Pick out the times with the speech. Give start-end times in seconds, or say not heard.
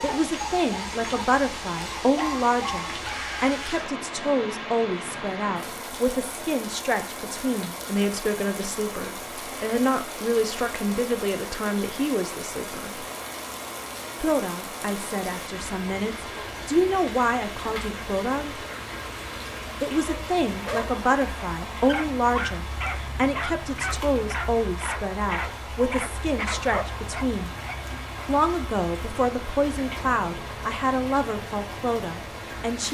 0.0-13.1, 14.2-18.6, 19.8-27.5, 28.2-32.8.